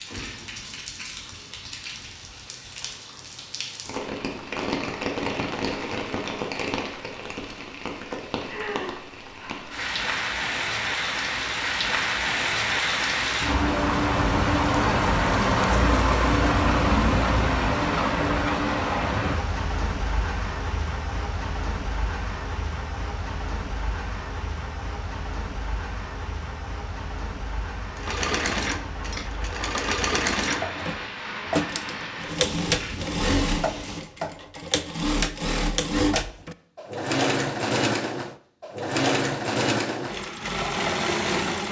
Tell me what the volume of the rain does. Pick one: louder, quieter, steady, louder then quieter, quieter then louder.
louder then quieter.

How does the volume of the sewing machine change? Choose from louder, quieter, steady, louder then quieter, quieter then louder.
steady.